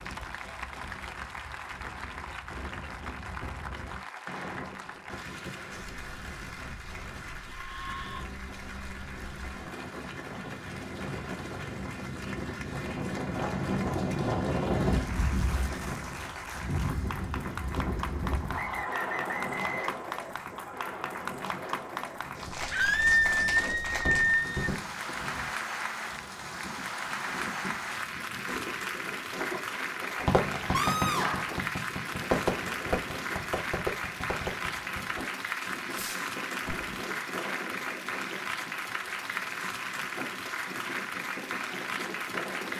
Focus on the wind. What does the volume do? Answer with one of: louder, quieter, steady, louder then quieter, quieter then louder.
louder then quieter.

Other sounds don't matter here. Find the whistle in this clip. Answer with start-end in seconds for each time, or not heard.
18.5-20.0.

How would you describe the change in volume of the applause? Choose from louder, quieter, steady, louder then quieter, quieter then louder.
louder.